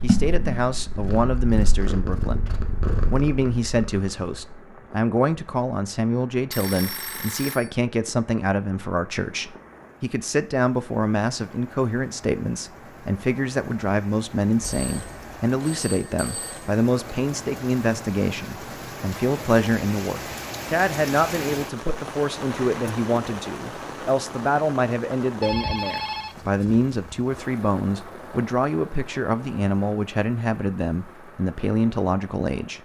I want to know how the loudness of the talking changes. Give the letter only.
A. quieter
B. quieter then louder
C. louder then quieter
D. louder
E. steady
E.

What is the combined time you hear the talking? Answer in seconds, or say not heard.
33 s.